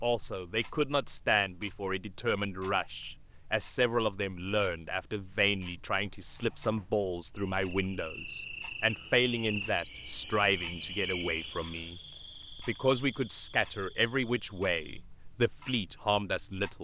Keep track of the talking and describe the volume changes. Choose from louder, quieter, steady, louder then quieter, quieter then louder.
steady.